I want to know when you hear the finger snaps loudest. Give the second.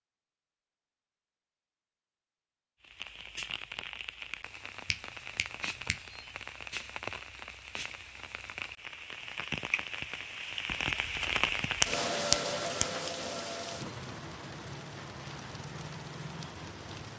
12 s.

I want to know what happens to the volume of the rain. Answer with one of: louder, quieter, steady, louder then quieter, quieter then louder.
louder then quieter.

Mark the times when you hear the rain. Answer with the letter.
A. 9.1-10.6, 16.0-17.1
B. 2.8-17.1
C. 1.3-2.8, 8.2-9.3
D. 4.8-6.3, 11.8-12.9
B.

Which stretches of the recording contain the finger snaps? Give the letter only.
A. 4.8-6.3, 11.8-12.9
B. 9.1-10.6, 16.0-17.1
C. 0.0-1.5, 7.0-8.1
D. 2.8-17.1
A.